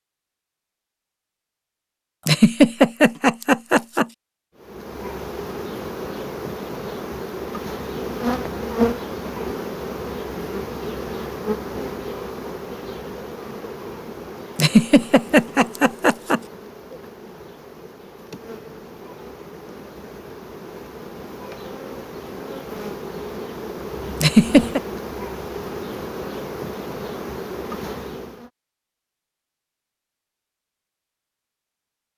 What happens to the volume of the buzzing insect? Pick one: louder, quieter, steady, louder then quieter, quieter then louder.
quieter then louder.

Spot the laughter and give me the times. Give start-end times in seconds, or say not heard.
2.2-4.0, 14.6-16.4, 24.2-24.8.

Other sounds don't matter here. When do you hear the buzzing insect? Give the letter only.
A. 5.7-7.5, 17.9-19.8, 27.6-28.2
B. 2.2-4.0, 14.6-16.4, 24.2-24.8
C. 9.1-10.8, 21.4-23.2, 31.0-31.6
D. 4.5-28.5
D.